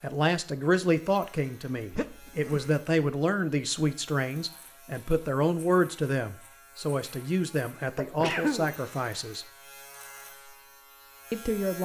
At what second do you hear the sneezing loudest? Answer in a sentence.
The volume of the sneezing peaks at 8 seconds.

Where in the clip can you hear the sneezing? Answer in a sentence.
You can hear the sneezing from 1.9 to 2.8 s and from 8.0 to 8.8 s.